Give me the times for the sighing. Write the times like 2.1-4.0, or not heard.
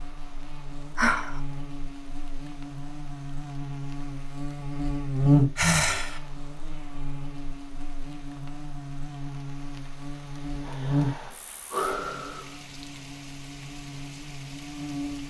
0.9-1.4, 5.5-6.2, 10.6-12.6.